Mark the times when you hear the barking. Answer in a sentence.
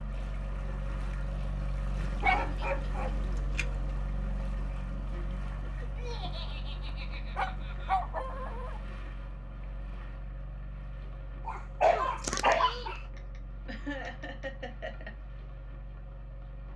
You can hear the barking from 2.0 to 3.9 s, from 7.3 to 8.8 s and from 11.4 to 13.0 s.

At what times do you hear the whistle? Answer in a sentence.
The whistle can't be heard in this clip.